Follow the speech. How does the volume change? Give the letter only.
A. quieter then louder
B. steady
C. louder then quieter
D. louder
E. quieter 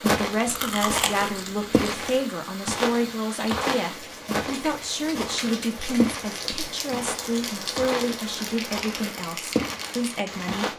B.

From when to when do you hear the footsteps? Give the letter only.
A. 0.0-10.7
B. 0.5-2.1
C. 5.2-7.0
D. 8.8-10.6
A.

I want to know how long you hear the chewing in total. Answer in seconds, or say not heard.
2 s.